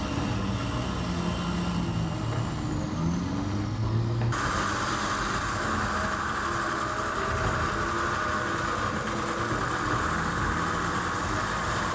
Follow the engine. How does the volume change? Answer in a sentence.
The loudness of the engine stays about the same.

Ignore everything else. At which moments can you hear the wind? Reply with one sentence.
You can hear the wind from 0.0 to 11.8 s.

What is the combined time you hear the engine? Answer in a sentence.
The engine can be heard for 12 seconds in total.